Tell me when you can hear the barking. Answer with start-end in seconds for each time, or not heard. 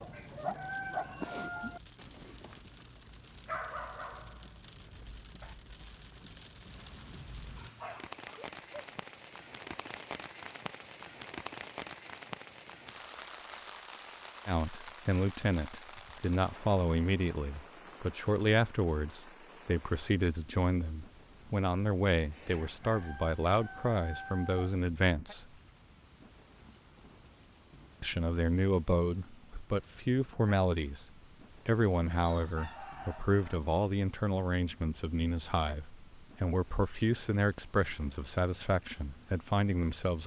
0.0-5.5, 7.5-8.9.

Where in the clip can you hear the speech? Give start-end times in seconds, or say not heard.
14.4-25.4, 28.0-40.2.